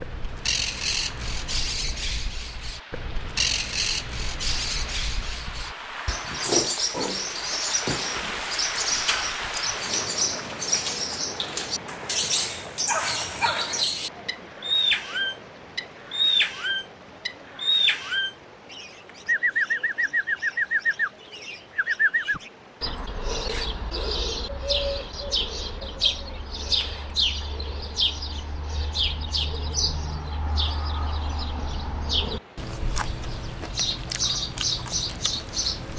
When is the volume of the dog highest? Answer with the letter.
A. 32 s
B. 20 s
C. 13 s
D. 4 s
C.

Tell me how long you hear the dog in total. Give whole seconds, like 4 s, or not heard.
2 s.